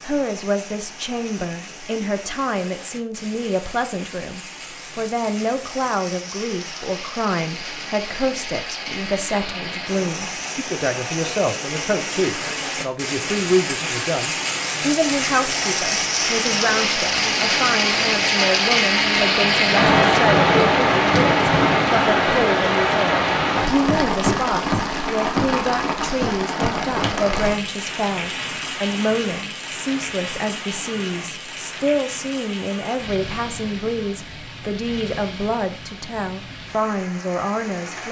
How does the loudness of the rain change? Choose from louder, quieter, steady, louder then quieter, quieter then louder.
louder then quieter.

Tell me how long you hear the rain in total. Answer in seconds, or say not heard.
38 s.